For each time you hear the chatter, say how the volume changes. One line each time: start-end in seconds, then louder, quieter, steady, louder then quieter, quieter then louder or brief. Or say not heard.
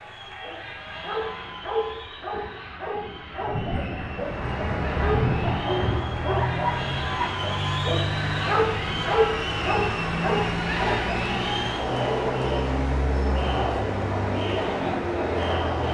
0.0-15.8 louder.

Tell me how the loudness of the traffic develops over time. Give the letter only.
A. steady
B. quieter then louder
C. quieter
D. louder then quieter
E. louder
A.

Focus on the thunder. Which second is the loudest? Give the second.
5 s.